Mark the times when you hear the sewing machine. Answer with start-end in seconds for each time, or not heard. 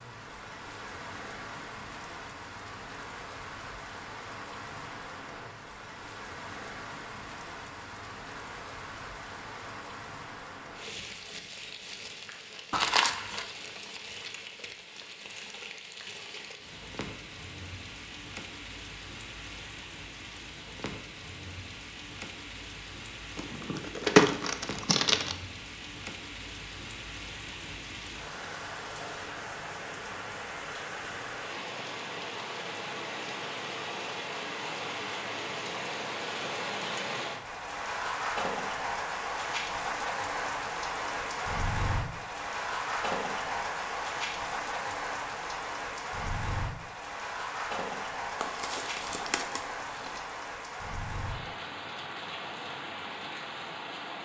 not heard.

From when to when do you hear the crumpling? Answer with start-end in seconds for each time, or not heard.
12.7-13.4, 23.4-25.4, 48.4-50.2.